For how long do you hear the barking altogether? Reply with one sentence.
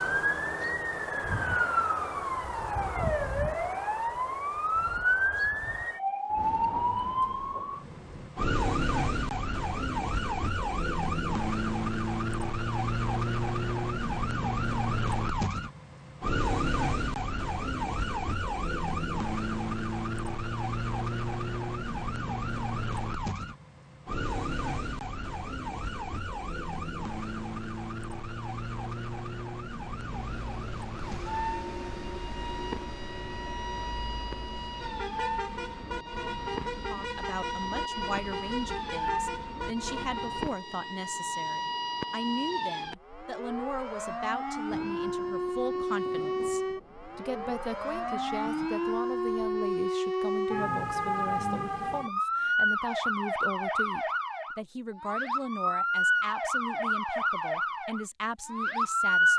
The barking can't be heard in this clip.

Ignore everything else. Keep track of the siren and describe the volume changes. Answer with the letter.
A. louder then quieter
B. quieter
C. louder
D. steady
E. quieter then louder
E.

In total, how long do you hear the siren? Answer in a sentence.
You can hear the siren for 59 seconds altogether.